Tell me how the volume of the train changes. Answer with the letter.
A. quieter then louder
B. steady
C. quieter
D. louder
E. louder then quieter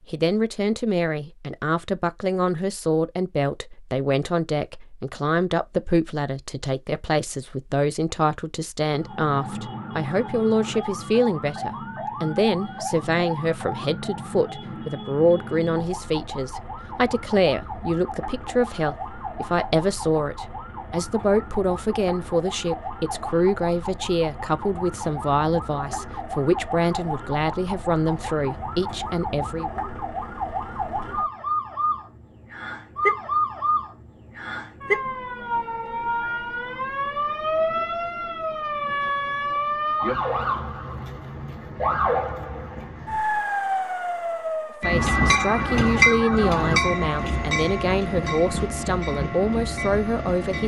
C.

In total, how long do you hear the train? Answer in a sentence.
You can hear the train for 6 seconds altogether.